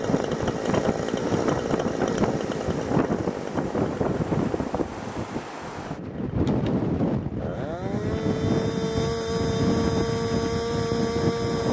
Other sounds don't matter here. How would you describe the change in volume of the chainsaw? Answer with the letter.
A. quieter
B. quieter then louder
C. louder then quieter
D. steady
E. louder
B.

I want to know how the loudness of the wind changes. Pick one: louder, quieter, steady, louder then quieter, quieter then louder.
steady.